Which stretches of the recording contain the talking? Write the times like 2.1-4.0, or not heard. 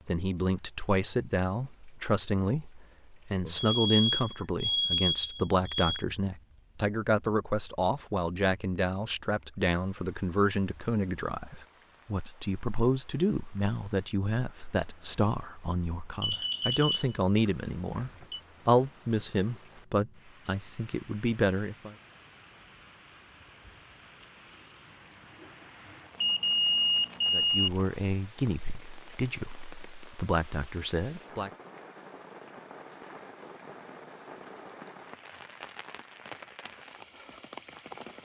0.1-21.9, 27.3-31.5.